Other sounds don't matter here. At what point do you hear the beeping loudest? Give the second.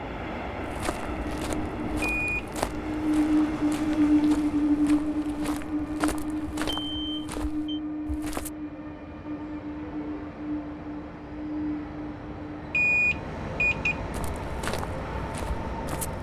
13 s.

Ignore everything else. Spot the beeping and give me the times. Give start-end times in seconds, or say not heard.
2.0-2.5, 6.8-7.8, 12.7-13.9.